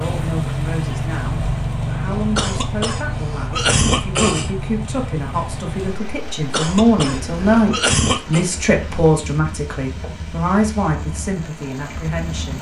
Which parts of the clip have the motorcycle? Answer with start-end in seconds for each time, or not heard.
0.0-12.5.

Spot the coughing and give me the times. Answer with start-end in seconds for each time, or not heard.
2.4-4.5, 6.5-8.4.